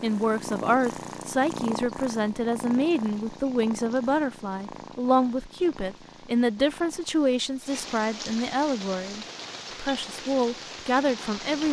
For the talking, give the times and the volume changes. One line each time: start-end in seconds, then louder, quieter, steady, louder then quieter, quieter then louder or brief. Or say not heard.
0.0-11.6 steady.